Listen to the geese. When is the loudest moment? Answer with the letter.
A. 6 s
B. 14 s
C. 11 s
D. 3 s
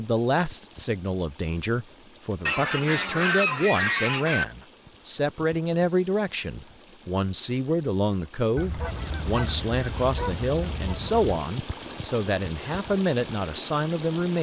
D.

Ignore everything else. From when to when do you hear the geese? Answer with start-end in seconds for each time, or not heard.
2.5-4.5, 8.6-11.4.